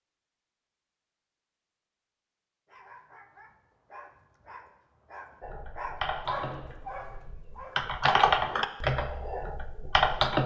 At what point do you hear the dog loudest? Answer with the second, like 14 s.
6 s.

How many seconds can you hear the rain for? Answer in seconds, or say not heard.
not heard.